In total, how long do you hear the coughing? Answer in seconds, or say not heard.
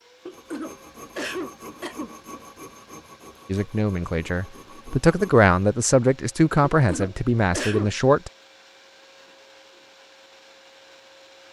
3 s.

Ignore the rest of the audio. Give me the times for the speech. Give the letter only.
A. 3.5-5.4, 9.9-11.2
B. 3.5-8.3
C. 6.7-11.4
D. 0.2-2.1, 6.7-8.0
B.